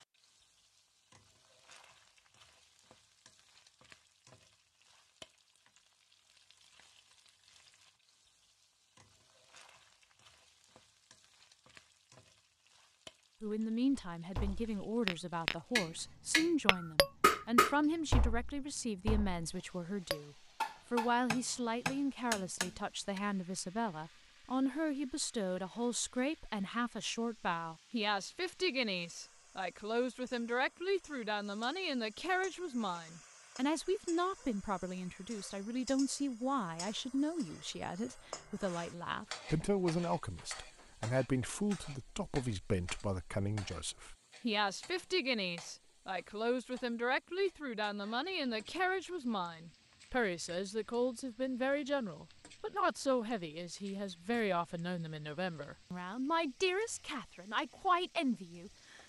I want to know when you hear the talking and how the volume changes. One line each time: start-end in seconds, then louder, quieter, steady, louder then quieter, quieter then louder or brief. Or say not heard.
13.4-59.0 steady.